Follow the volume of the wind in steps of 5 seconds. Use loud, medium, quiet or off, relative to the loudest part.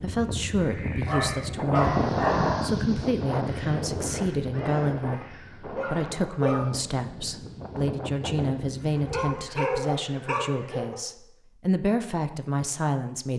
loud, medium, off.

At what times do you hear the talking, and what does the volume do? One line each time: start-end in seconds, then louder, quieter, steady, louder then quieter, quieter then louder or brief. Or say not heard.
0.0-13.3 steady.